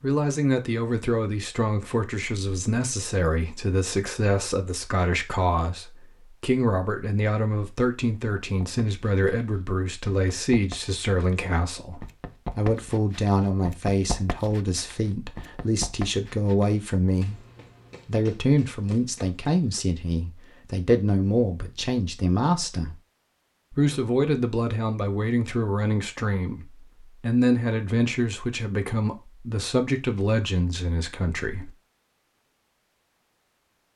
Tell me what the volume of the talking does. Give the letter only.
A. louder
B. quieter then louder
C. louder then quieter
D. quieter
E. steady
E.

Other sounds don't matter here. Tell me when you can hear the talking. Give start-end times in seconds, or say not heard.
0.0-17.4, 18.1-23.0, 23.7-31.7.